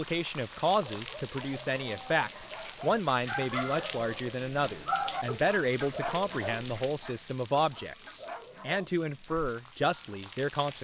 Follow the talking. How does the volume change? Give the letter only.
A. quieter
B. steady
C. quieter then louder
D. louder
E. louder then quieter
B.